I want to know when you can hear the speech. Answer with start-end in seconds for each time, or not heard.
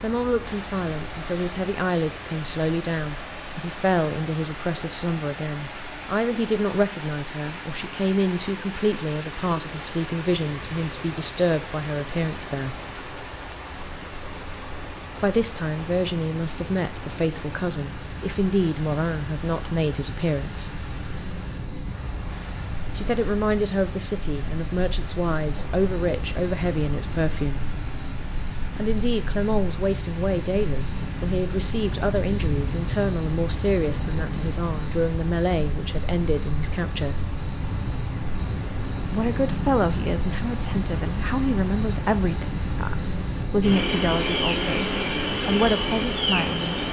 0.0-12.8, 15.2-20.9, 22.9-27.7, 28.8-37.2, 39.1-46.7.